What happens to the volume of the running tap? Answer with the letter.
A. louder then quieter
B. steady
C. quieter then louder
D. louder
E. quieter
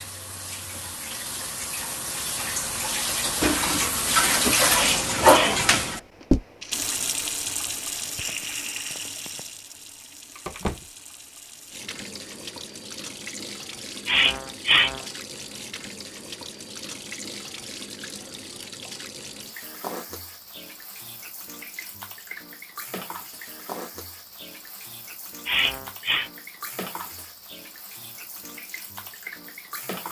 E.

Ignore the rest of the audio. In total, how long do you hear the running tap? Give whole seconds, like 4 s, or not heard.
30 s.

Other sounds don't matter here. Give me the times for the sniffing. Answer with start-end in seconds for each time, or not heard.
4.7-5.7, 14.1-15.0, 25.4-26.3.